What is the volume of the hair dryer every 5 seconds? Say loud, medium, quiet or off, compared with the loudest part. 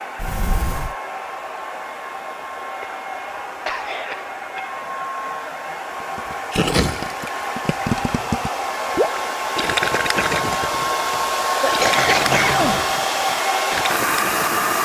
medium, medium, loud.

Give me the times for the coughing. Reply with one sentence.
You can hear the coughing from 2.8 to 4.8 s and from 11.6 to 12.8 s.